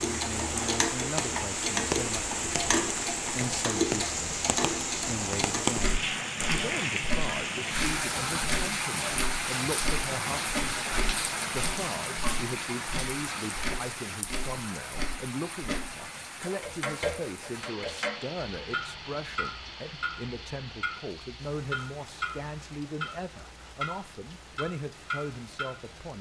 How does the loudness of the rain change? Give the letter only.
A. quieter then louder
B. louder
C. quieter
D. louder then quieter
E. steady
C.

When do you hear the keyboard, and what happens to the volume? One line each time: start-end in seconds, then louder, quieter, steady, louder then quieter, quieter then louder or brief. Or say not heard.
not heard.